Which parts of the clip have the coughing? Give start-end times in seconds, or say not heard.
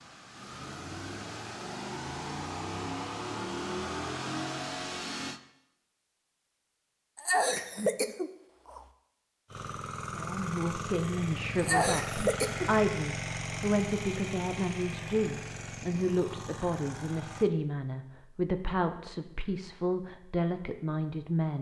7.2-8.8, 11.6-12.7.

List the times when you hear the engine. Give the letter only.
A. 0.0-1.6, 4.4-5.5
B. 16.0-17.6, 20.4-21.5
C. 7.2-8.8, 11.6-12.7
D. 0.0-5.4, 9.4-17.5
D.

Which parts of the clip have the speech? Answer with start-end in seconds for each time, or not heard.
10.1-21.5.